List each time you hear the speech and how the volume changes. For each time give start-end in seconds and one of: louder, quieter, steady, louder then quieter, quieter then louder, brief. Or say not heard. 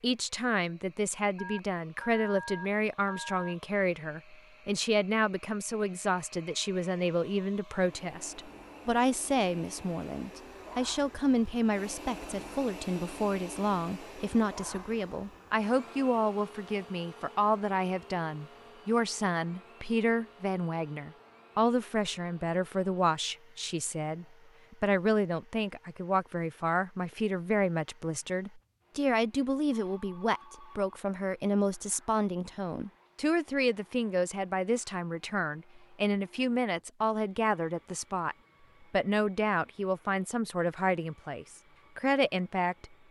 0.0-42.9 steady.